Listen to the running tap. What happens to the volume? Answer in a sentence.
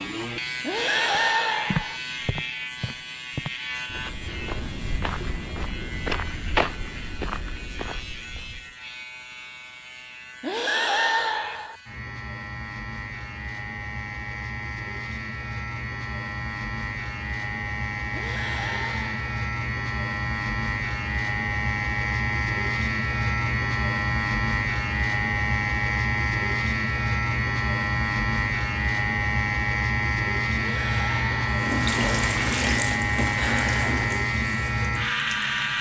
The loudness of the running tap goes down.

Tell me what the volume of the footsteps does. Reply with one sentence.
The loudness of the footsteps goes up, then down.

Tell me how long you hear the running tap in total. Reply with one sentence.
You can hear the running tap for 4 seconds altogether.